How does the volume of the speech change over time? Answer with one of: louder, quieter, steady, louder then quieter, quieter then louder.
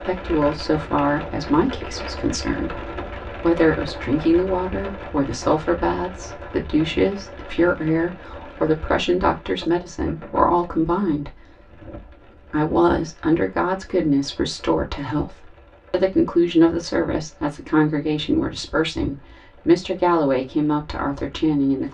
steady.